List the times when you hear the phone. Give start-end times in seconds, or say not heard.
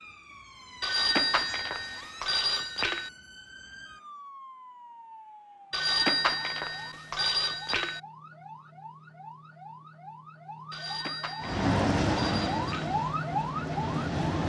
0.8-3.1, 5.7-8.0, 10.7-12.9.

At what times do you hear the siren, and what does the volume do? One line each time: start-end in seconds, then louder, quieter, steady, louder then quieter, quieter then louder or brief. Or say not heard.
0.0-14.4 louder.